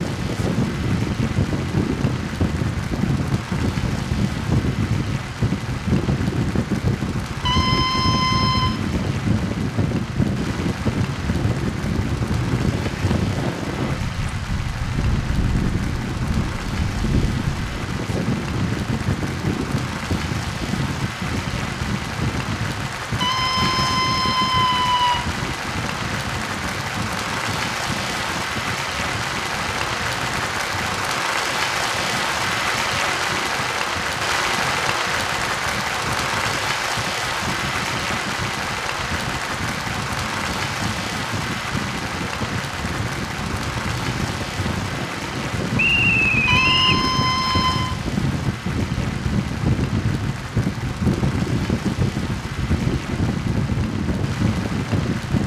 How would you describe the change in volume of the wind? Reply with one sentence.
The loudness of the wind goes down, then up.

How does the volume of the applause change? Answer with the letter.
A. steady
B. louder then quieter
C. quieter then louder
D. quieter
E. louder
B.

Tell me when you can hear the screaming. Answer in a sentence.
You can hear the screaming from 7.5 to 8.8 s, from 23.2 to 25.2 s and from 46.5 to 48.0 s.